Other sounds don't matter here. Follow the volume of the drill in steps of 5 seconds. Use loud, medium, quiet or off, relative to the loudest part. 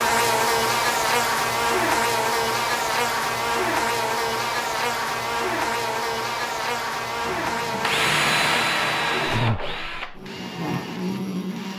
off, loud, quiet.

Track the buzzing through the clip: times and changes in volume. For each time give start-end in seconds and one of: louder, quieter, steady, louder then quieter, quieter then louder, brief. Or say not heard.
0.0-11.7 quieter.